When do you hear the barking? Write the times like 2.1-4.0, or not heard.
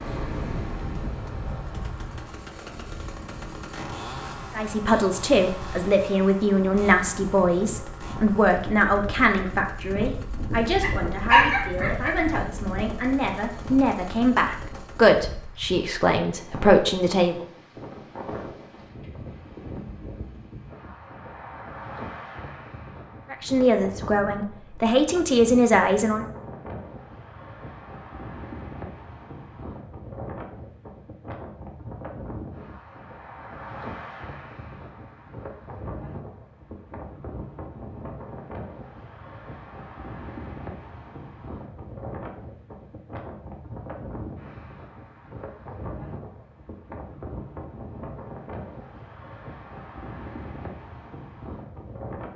10.8-12.2.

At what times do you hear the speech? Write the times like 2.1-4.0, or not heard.
4.5-17.4, 23.3-26.2.